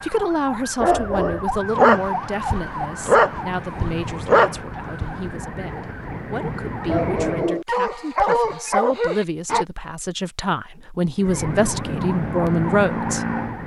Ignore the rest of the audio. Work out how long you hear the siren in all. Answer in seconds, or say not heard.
10 s.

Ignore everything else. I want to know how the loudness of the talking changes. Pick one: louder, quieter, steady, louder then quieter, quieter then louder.
quieter then louder.